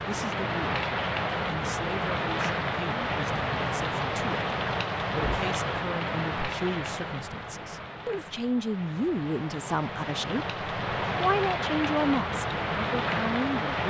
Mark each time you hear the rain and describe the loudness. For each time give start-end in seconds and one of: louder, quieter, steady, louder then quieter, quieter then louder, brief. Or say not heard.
0.0-13.8 quieter then louder.